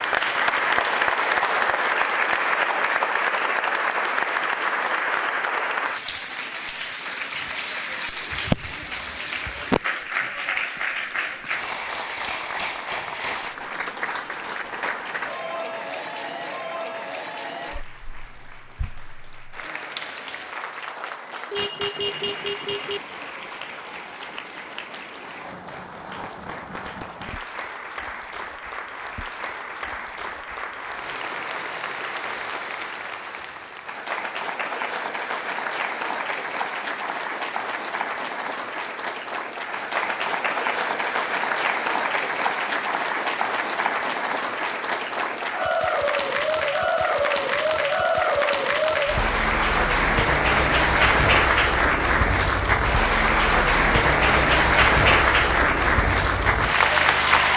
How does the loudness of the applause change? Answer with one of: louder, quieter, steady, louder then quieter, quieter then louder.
quieter then louder.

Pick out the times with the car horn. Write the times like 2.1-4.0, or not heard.
21.5-23.0.